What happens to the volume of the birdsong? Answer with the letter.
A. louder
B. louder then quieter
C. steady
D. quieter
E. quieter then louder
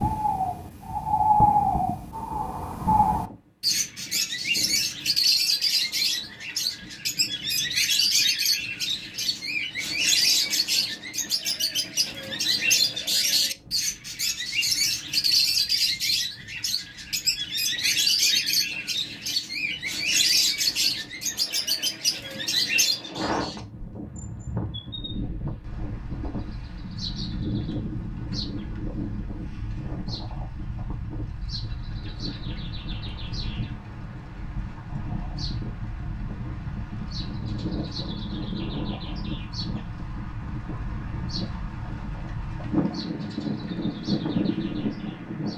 D.